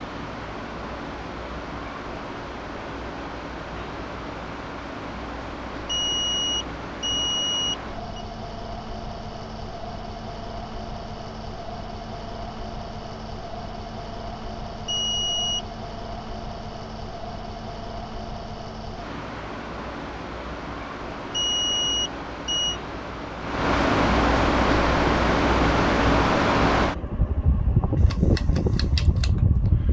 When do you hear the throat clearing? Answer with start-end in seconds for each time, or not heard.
not heard.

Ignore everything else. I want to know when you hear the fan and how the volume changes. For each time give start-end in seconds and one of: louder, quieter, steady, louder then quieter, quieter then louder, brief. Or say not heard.
0.0-29.8 louder.